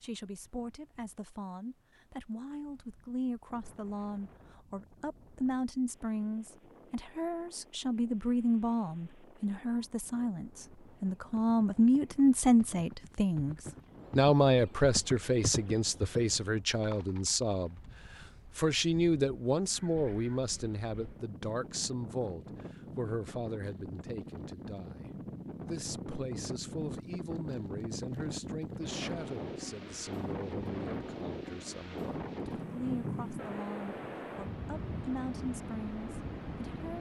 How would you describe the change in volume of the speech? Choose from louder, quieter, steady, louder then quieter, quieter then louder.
louder then quieter.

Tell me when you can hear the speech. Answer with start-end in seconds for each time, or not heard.
0.0-13.6, 14.2-36.9.